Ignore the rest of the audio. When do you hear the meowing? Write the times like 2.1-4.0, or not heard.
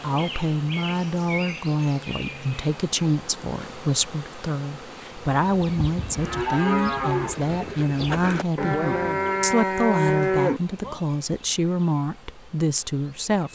not heard.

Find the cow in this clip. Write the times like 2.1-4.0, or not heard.
5.5-11.0.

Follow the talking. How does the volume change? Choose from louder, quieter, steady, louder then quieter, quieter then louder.
steady.